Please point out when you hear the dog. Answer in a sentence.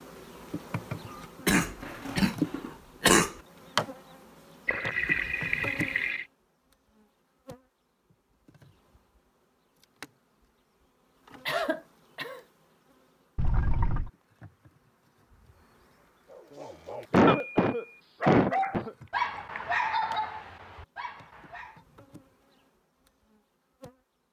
You can hear the dog from 16.2 to 21.8 s.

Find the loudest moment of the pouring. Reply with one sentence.
The loudest moment of the pouring is at 5 seconds.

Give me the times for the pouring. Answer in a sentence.
The pouring can be heard from 4.7 to 6.2 s, from 13.3 to 14.1 s and from 19.1 to 19.6 s.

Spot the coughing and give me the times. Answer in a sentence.
The coughing can be heard from 1.4 to 3.3 s, from 11.4 to 12.4 s and from 17.1 to 18.9 s.